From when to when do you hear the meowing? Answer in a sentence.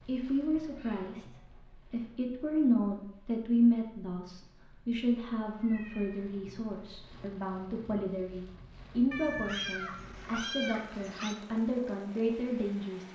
You can hear the meowing from 0.6 to 1.6 s, from 5.5 to 6.2 s and from 9.1 to 11.3 s.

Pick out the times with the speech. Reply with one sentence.
You can hear the speech from 0.1 to 13.0 s.